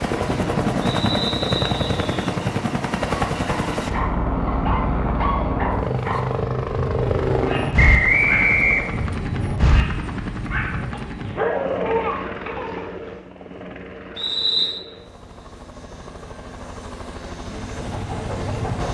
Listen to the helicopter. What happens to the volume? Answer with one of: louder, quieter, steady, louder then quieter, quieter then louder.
quieter.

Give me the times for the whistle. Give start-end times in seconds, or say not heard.
0.8-2.1, 7.8-9.0, 14.2-14.8.